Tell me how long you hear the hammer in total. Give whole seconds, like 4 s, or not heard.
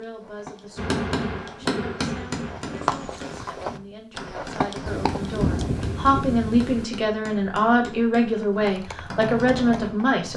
9 s.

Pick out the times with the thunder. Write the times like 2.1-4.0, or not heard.
4.8-6.8.